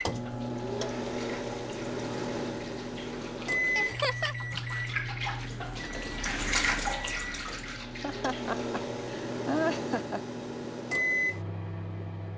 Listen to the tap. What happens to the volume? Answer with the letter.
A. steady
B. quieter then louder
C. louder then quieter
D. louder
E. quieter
D.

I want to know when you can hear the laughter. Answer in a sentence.
The laughter can be heard from 3.8 to 4.3 s and from 8.0 to 10.2 s.